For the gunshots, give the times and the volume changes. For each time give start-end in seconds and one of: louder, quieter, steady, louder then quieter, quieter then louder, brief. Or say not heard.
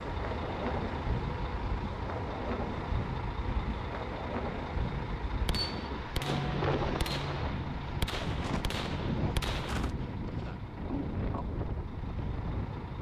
5.5-9.9 steady.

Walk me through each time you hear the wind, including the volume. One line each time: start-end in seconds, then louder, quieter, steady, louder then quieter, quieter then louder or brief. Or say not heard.
0.0-12.9 steady.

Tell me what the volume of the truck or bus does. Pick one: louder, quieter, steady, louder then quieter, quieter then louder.
quieter.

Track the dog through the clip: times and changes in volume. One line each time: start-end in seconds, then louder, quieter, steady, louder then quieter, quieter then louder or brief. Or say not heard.
not heard.